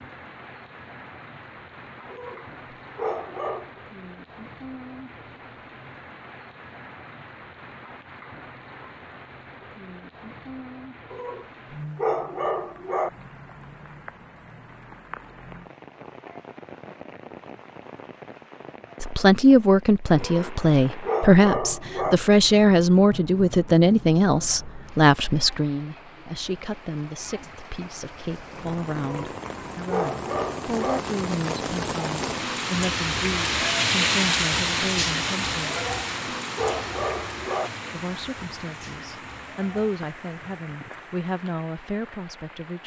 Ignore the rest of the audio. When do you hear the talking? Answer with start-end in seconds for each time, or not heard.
19.0-35.8, 37.9-42.8.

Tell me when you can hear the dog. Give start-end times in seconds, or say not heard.
2.1-3.7, 11.1-13.1, 20.1-22.1, 29.0-31.0, 35.7-37.7.